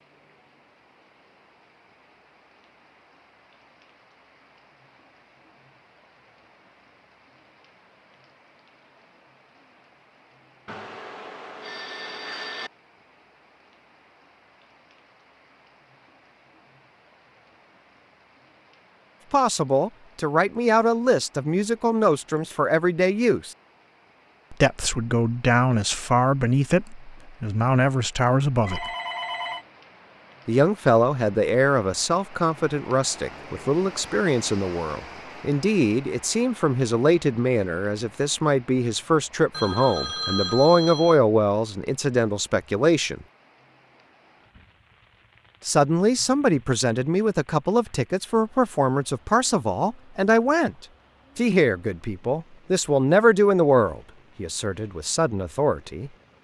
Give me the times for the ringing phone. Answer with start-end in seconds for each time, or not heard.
10.7-12.7, 28.6-29.6, 39.5-41.2.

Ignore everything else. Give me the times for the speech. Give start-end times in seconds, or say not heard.
19.3-23.6, 24.5-28.9, 30.4-43.2, 45.6-56.1.